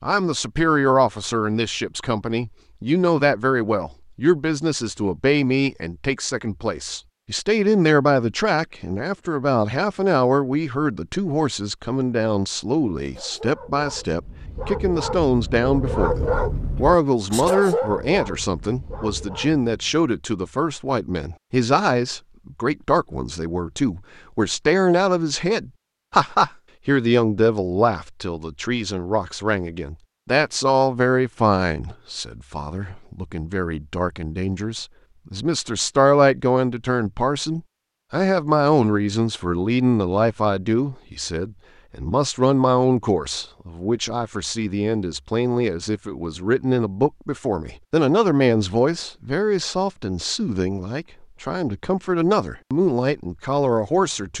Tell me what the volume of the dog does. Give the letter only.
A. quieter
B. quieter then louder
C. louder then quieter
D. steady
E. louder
C.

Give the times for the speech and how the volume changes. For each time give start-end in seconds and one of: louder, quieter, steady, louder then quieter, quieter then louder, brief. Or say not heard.
0.0-54.3 steady.